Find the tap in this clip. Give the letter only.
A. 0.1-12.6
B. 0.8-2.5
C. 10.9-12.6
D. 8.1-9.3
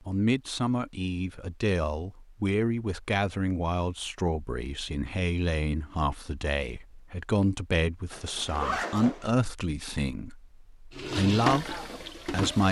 C.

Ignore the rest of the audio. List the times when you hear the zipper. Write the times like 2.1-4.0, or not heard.
8.1-9.3.